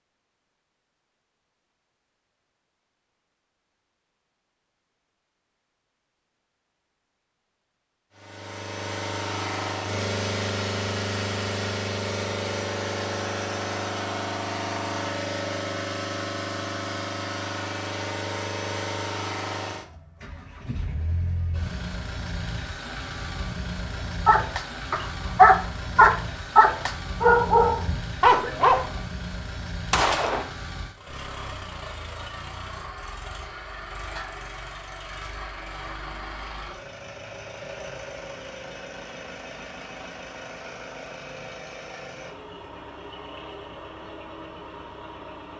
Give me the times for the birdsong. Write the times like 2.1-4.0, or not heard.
not heard.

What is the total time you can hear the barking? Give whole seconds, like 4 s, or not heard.
5 s.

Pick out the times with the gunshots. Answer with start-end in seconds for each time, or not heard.
29.9-30.5.